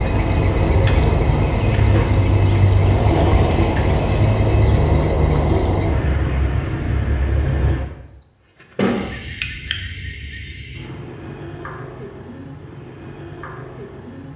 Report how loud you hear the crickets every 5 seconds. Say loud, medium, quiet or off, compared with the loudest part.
loud, loud, quiet.